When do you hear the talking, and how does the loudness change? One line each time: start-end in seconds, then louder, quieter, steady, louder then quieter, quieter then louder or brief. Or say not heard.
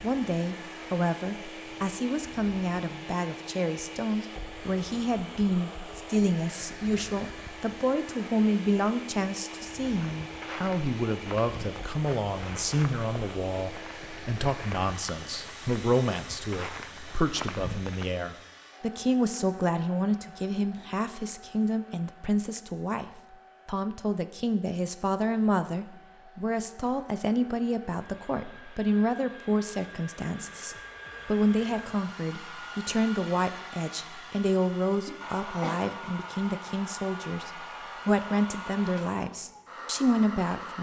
0.0-40.7 steady.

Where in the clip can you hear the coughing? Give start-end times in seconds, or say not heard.
35.0-36.0.